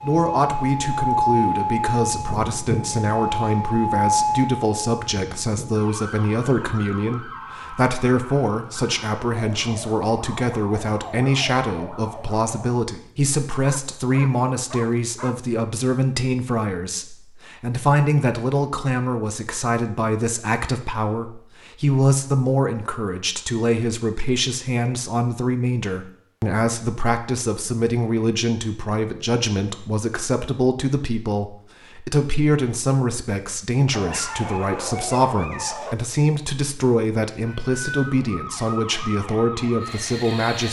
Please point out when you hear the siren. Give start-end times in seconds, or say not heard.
0.0-12.8, 37.4-40.6.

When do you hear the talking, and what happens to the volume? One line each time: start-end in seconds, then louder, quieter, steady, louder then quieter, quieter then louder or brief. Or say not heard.
0.0-40.6 steady.